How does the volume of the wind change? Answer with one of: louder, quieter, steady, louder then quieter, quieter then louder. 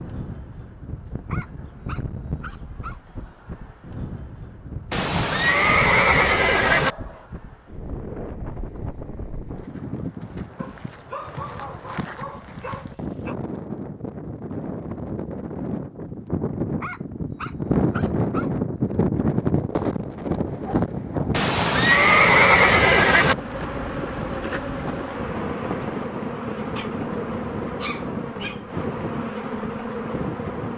louder then quieter.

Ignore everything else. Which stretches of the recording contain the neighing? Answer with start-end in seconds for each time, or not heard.
4.9-7.0, 21.3-23.4.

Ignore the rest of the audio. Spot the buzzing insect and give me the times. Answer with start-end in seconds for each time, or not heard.
23.1-30.7.